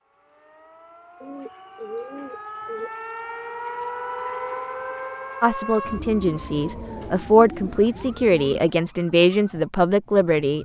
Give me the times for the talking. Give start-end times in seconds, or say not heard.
5.4-10.6.